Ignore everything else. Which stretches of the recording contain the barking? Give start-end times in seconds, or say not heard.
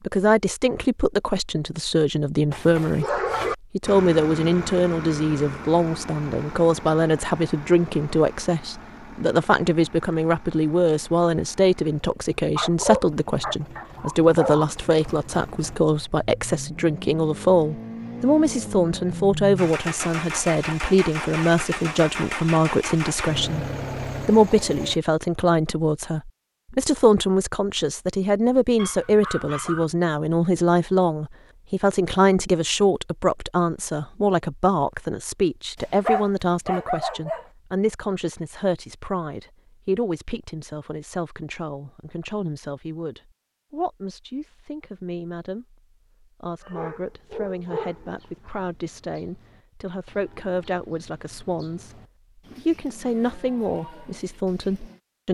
2.5-3.5, 12.6-14.7, 28.8-29.9, 35.8-37.5, 46.6-48.5.